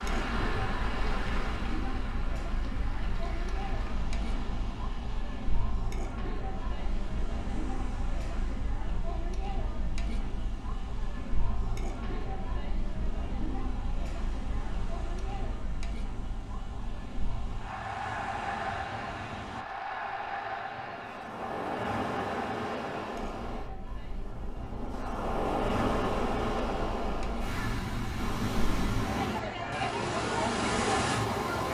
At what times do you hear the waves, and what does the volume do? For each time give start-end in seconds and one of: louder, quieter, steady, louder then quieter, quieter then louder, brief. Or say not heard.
0.0-31.7 quieter then louder.